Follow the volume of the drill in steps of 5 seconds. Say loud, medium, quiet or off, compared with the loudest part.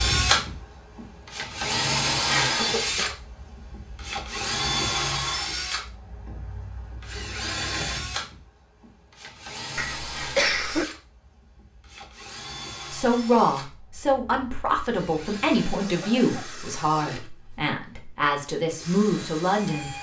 loud, medium, quiet, quiet.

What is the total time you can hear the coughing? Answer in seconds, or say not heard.
2 s.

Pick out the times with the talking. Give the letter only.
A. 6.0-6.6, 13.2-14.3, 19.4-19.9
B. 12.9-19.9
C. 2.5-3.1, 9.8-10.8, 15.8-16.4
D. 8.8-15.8
B.